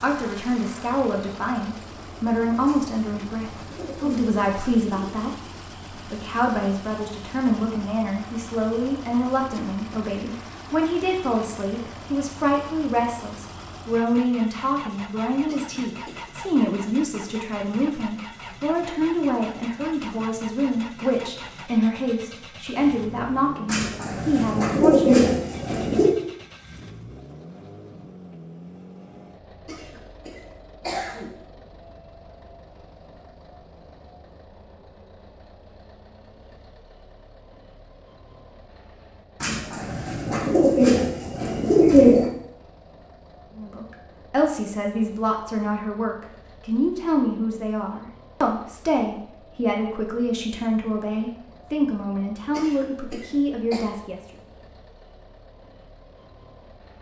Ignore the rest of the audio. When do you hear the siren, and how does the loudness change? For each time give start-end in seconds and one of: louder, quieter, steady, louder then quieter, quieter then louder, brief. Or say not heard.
not heard.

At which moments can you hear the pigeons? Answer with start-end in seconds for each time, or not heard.
2.6-5.2, 23.6-26.1, 39.4-42.3.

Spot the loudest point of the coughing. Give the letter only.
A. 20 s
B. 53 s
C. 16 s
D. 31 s
D.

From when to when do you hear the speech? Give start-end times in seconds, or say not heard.
0.0-5.3, 6.0-25.2, 43.5-54.2.